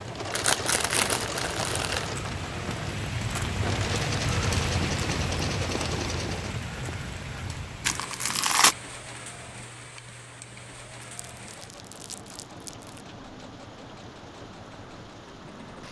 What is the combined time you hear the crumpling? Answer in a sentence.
You can hear the crumpling for 5 seconds altogether.